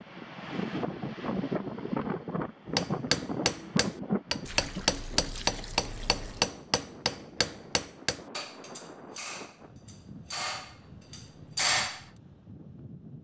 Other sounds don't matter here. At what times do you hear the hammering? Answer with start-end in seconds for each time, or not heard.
2.8-12.1.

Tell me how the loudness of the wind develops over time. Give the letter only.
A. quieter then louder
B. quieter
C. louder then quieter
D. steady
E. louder
B.